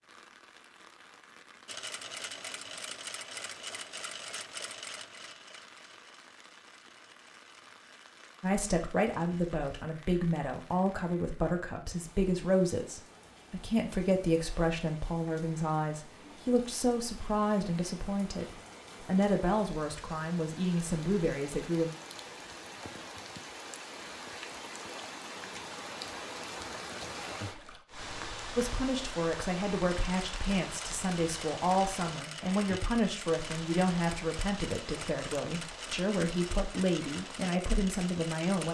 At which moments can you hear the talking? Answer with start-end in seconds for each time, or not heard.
8.4-21.9, 28.6-38.6.